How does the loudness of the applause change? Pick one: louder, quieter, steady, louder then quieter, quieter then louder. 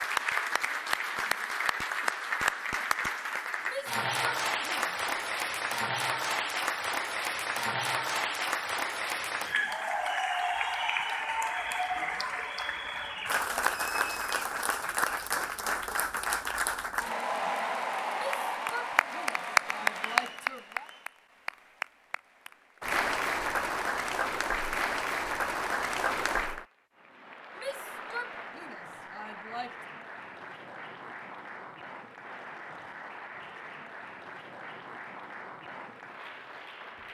quieter.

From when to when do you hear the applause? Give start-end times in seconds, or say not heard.
0.0-37.0.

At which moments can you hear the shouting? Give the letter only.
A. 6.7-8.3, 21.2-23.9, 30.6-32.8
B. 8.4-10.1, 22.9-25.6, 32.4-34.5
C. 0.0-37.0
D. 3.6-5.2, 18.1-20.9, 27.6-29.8
D.